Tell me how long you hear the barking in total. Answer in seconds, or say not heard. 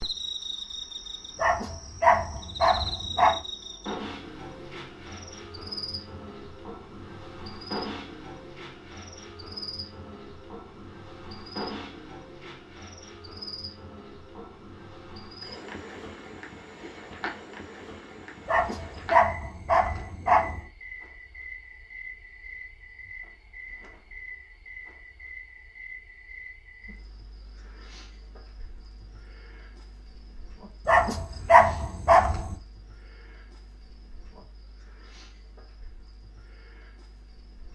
6 s.